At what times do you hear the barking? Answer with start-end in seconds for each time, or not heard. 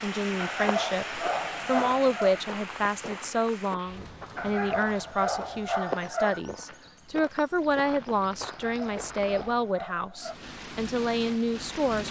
0.3-2.4, 4.3-6.4, 8.4-10.3.